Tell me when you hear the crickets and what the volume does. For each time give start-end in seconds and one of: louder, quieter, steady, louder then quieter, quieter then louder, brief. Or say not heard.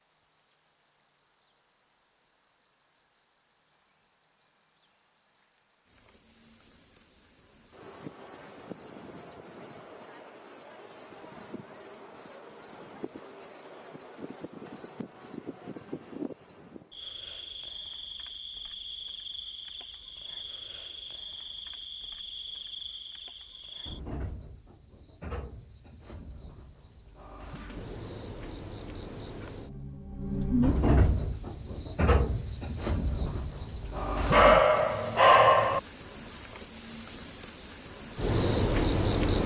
0.0-39.4 louder.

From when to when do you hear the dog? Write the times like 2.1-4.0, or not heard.
34.3-35.8.